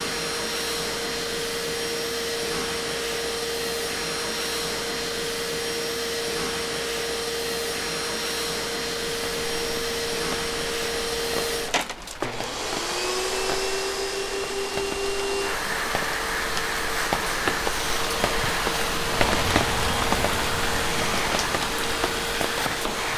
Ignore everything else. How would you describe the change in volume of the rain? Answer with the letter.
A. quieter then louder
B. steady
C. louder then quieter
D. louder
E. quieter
D.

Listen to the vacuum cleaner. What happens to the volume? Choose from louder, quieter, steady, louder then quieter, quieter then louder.
steady.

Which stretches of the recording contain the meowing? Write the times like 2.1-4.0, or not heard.
not heard.